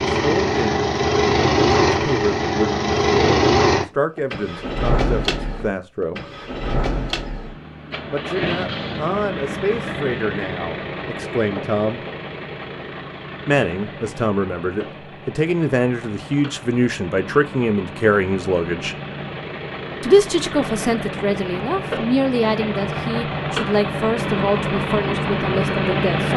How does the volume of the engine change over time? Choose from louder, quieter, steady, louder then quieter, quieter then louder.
quieter then louder.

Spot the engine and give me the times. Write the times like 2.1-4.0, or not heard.
0.0-26.3.